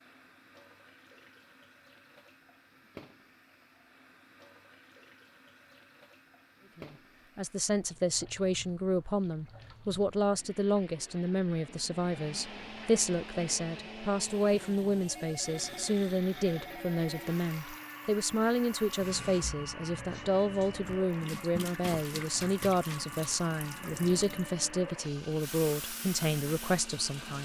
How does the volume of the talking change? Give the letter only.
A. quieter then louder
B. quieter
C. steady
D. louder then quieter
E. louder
C.